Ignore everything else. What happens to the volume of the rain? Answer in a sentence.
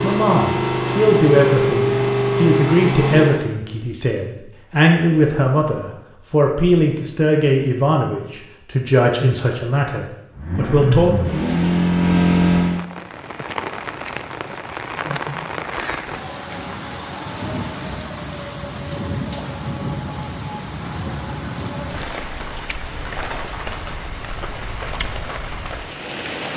The loudness of the rain stays about the same.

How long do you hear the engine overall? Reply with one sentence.
The engine can be heard for 6 seconds in total.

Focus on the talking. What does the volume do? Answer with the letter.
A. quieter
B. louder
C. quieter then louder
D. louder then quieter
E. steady
E.